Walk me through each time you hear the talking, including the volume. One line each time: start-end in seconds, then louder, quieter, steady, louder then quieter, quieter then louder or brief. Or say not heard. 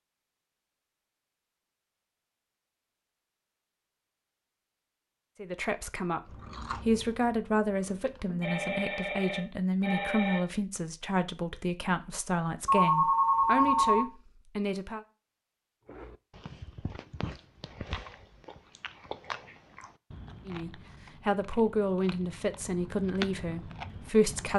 5.4-15.0 steady
20.4-24.5 quieter.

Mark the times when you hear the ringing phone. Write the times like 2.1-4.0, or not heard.
8.4-10.4, 12.7-14.1.